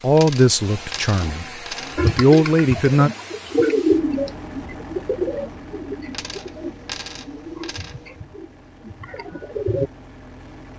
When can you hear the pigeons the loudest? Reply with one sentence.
The loudest moment of the pigeons is at 4 seconds.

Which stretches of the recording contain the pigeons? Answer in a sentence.
You can hear the pigeons from 1.9 to 9.9 s.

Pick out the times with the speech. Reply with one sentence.
The speech can be heard from 0.0 to 3.1 s.